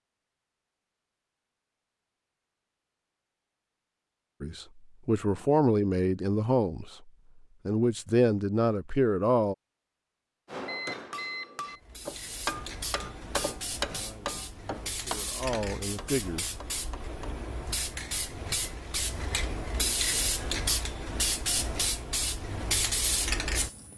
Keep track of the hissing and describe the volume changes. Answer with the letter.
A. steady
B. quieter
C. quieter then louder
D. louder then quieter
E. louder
E.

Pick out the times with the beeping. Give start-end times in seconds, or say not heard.
10.7-11.8.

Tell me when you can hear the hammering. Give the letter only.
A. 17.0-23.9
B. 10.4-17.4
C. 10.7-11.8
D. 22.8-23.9
B.